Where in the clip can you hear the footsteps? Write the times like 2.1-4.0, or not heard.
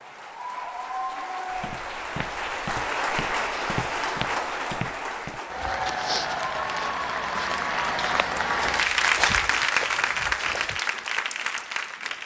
1.5-10.8.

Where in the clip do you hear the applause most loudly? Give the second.
9 s.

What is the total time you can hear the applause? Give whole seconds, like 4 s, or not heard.
12 s.